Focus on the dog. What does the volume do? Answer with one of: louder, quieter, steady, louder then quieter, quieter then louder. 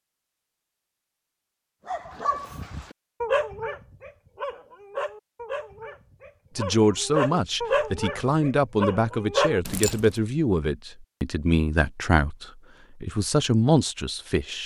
quieter then louder.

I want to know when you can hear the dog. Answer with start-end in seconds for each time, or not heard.
1.9-10.1.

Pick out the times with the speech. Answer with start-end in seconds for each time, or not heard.
6.5-14.6.